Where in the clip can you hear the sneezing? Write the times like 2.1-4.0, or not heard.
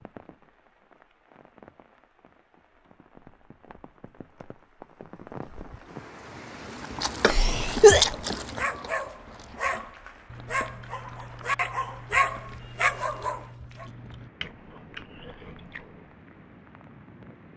7.2-8.2.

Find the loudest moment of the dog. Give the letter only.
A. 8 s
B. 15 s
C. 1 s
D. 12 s
D.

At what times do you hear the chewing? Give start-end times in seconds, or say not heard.
6.8-16.1.